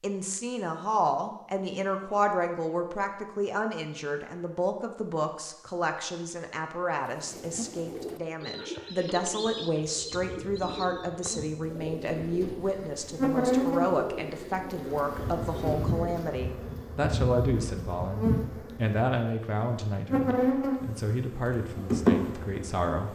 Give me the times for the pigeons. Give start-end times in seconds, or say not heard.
7.0-16.4.